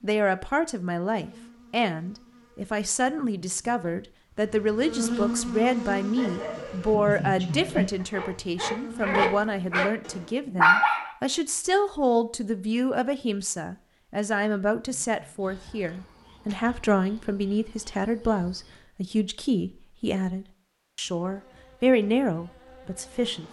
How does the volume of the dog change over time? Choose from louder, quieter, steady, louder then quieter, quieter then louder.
louder.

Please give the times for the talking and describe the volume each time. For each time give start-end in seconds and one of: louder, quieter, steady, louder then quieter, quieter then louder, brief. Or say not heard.
0.0-23.4 steady.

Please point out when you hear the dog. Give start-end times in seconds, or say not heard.
5.5-11.1.